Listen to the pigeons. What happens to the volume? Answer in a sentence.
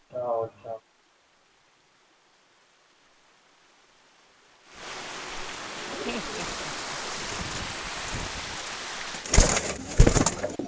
The volume of the pigeons goes up.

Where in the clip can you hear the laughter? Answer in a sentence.
The laughter can be heard from 0.1 to 0.8 s and from 6.0 to 7.2 s.